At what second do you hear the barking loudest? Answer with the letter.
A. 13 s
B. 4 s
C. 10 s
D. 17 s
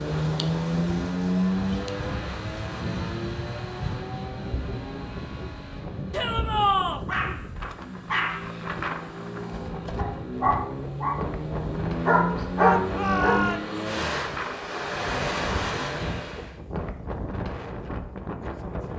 A.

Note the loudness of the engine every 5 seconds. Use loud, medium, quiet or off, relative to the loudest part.
loud, medium, loud, loud.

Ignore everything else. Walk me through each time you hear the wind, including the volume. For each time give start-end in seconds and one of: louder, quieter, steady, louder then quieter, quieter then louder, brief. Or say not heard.
0.0-18.9 steady.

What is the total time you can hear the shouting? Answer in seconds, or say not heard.
2 s.